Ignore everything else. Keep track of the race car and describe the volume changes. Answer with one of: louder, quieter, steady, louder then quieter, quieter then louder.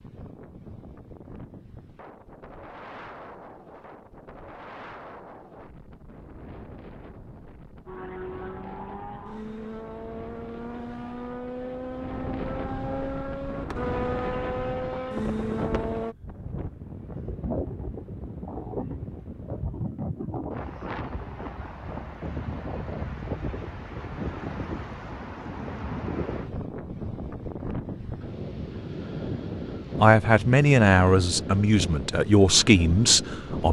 louder.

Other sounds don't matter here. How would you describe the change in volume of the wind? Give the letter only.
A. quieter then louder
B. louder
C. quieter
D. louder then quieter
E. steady
B.